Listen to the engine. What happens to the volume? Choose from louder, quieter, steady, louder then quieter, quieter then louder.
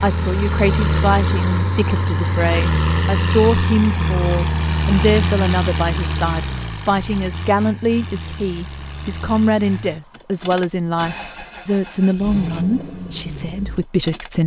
quieter.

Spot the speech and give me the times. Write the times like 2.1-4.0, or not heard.
0.0-14.4.